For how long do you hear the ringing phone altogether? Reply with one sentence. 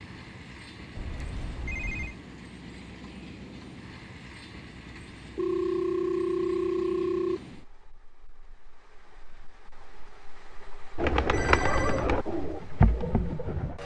The ringing phone can be heard for 4 seconds in total.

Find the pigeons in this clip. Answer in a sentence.
The pigeons can be heard from 10.9 to 13.8 s.